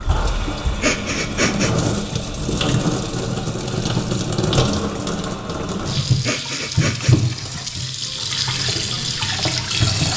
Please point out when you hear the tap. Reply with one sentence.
You can hear the tap from 0.0 to 10.1 s.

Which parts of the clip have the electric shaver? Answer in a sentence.
You can't hear the electric shaver here.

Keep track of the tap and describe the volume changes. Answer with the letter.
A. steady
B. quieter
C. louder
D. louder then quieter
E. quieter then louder
A.